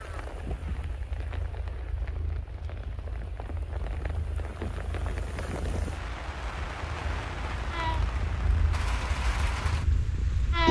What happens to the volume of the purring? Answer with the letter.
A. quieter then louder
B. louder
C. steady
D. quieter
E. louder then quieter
B.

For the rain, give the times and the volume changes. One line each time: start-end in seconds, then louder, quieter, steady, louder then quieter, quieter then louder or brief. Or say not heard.
0.0-10.6 louder.